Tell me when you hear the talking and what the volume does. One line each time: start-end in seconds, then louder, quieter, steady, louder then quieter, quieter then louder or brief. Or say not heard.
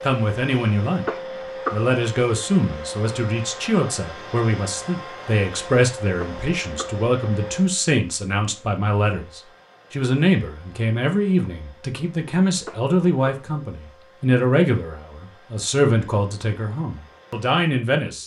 0.0-1.1 brief
1.7-18.2 steady.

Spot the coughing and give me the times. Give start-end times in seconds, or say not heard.
1.1-1.9, 6.2-7.0, 12.7-13.4.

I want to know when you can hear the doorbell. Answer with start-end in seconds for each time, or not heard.
not heard.